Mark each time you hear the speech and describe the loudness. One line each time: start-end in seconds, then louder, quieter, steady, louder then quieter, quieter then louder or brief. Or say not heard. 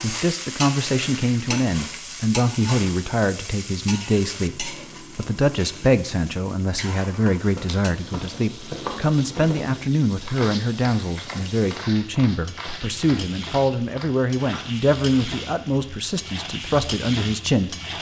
0.0-17.8 steady.